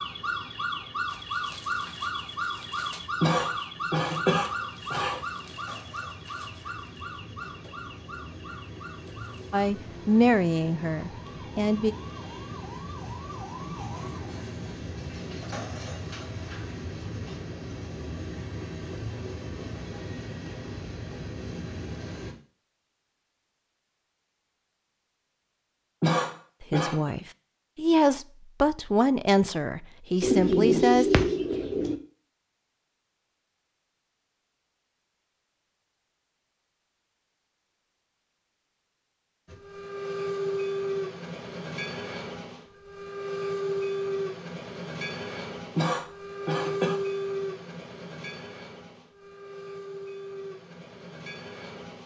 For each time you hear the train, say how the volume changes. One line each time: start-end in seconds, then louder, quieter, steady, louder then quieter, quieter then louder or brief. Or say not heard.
0.0-22.4 louder
39.5-52.0 quieter.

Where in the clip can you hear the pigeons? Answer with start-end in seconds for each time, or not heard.
30.2-32.0.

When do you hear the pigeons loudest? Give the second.
31 s.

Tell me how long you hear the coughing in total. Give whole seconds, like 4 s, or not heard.
4 s.